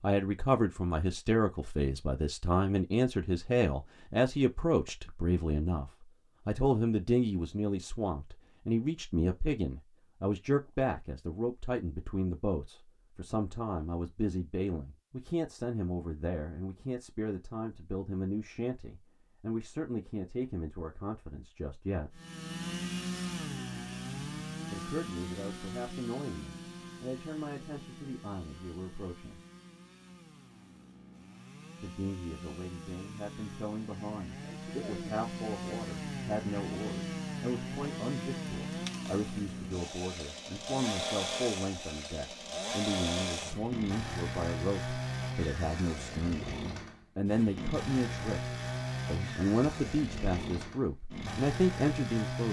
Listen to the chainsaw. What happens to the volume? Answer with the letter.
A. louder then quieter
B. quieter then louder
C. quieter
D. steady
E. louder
B.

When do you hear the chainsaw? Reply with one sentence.
The chainsaw can be heard from 22.1 to 52.4 s.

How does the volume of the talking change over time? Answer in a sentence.
The volume of the talking goes down, then up.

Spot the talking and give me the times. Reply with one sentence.
The talking can be heard from 0.0 to 22.2 s, from 24.7 to 29.4 s and from 31.8 to 52.4 s.